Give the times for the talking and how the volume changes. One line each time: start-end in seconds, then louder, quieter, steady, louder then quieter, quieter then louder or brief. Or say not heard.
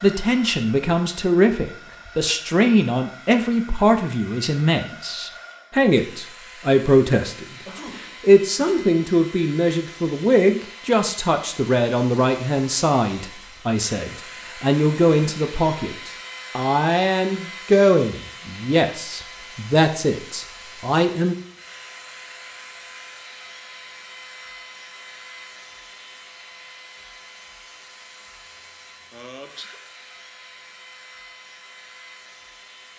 0.0-21.4 steady.